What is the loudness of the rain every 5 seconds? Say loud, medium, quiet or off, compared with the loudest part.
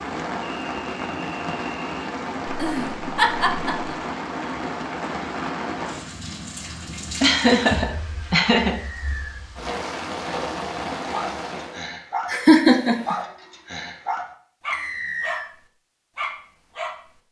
loud, loud, loud, off.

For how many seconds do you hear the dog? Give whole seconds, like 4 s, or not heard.
6 s.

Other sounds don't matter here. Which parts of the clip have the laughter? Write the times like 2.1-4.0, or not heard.
2.5-4.0, 7.2-8.8, 12.2-13.2.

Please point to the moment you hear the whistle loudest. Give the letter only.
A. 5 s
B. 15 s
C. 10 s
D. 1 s
B.